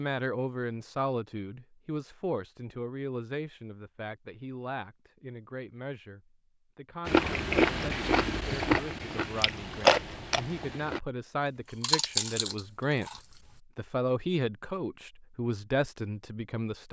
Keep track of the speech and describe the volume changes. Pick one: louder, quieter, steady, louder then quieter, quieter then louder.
quieter then louder.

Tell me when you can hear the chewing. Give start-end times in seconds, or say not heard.
7.0-11.0, 11.7-13.2.